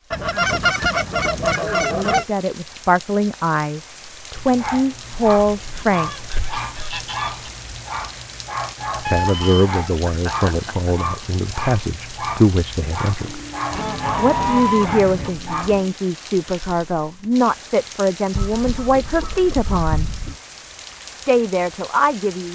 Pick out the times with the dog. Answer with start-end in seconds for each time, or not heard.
4.3-15.8.